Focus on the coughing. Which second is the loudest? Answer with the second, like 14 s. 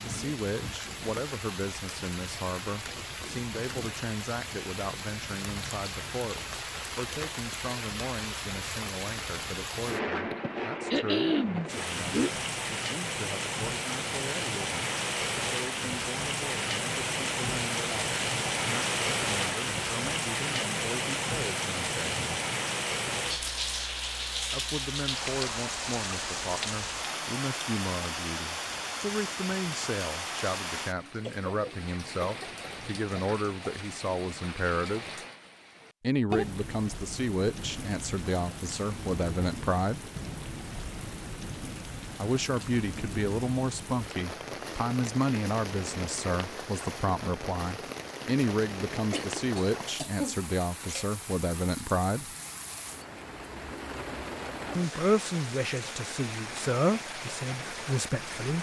11 s.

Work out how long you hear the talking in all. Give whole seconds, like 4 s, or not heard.
51 s.